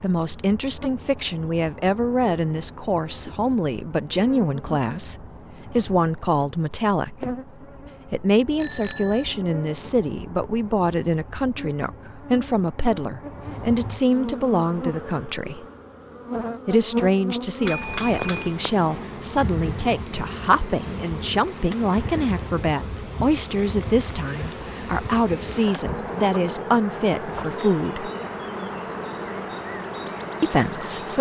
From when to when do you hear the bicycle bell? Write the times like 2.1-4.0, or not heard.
8.6-9.2, 17.6-18.6.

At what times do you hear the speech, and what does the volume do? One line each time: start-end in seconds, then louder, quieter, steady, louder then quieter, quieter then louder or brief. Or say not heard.
0.0-7.2 steady
8.1-15.7 steady
16.6-28.1 steady
30.4-31.1 brief.